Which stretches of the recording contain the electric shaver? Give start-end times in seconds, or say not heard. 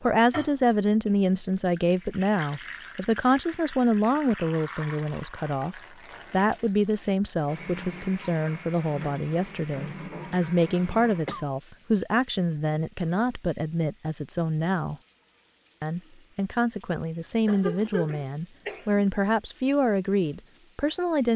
not heard.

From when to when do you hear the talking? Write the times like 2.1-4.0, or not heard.
0.0-14.9, 15.8-21.3.